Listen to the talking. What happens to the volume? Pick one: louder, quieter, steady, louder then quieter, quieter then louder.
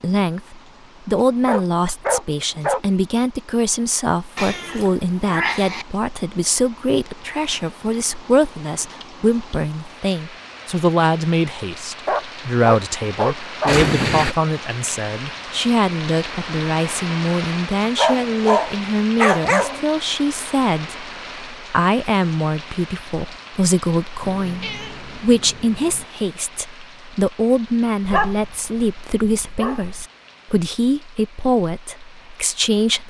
steady.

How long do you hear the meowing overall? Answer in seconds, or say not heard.
4 s.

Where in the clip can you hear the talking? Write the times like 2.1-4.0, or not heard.
0.0-33.0.